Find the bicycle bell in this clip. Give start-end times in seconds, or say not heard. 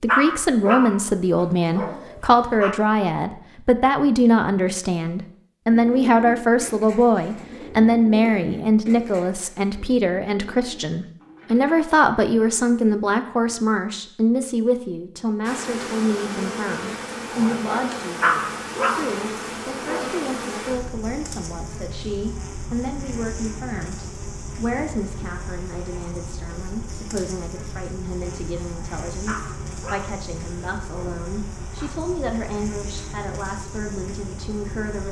not heard.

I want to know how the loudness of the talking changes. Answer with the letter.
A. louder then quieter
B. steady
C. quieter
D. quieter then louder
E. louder
C.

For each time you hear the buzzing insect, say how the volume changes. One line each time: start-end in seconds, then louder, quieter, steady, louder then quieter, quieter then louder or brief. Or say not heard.
15.4-35.0 quieter.